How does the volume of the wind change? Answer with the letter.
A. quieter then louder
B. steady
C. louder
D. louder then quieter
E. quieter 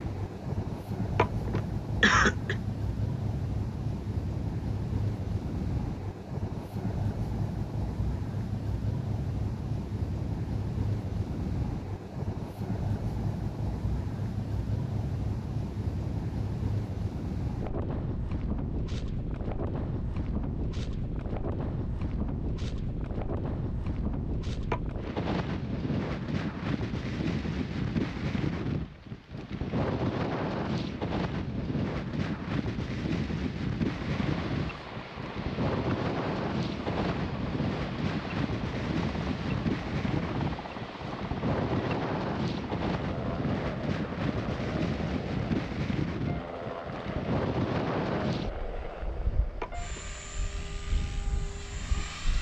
B.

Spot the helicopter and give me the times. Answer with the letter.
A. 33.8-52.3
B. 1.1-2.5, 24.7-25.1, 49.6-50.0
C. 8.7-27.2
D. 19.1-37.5
A.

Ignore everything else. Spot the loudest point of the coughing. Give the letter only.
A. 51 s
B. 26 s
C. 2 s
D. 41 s
C.